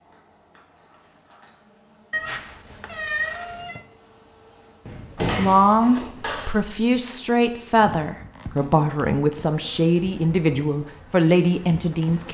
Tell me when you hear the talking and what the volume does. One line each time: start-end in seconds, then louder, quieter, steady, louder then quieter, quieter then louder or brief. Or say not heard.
5.3-12.3 steady.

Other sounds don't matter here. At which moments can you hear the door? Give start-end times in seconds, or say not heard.
4.8-6.6.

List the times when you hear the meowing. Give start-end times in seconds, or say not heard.
2.1-3.9.